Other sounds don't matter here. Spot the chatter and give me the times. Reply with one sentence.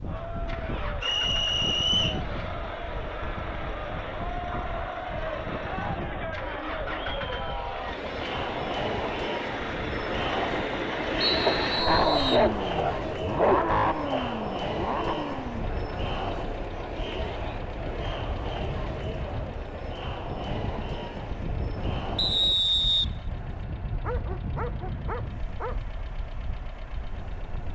The chatter can be heard from 0.0 to 22.6 s.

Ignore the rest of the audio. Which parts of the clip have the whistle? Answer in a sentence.
You can hear the whistle from 1.0 to 2.2 s, from 11.2 to 12.5 s and from 22.1 to 23.6 s.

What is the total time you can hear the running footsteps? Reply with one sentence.
You can't hear the running footsteps here.